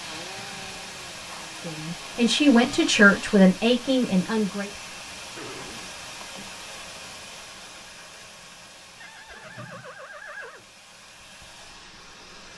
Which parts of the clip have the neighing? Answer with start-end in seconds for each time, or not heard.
0.3-1.5, 5.3-6.5, 9.0-10.7.